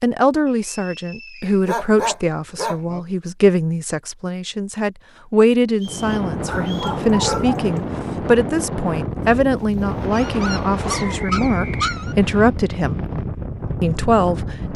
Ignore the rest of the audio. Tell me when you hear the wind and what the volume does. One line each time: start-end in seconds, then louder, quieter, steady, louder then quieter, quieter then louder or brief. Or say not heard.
5.8-14.7 steady.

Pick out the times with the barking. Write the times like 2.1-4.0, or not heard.
1.6-3.0, 6.5-7.7, 10.1-12.2.